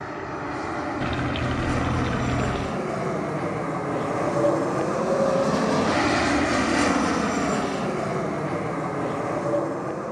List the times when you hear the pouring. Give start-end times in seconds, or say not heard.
1.0-2.8.